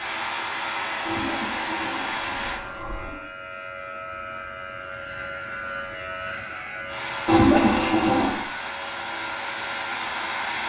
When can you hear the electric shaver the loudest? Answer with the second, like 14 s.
6 s.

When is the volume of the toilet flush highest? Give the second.
8 s.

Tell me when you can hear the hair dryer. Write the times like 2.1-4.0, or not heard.
0.0-2.6, 6.8-10.6.